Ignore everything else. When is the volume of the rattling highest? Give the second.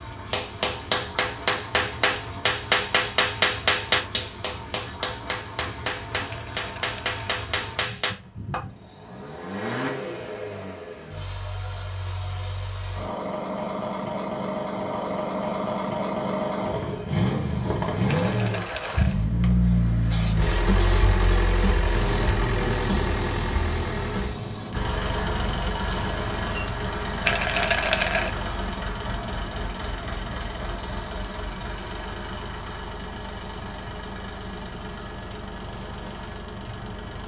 28 s.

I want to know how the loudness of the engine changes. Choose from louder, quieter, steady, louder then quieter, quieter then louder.
louder then quieter.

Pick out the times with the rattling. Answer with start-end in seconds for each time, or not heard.
6.3-7.2, 18.1-19.1, 27.2-28.3.